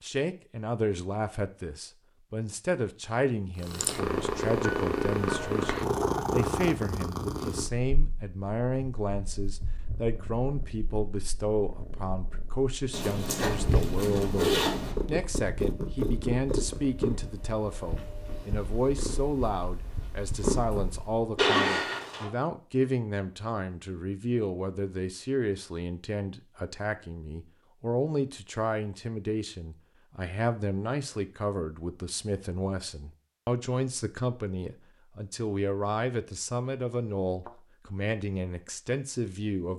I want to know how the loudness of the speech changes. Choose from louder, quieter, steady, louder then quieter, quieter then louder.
steady.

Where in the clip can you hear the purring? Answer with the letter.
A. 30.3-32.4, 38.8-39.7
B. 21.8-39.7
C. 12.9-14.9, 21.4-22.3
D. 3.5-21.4
D.